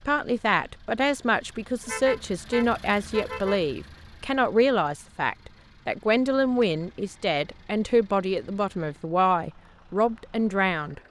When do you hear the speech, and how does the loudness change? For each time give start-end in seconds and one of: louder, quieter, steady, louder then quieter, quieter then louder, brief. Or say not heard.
0.1-11.0 steady.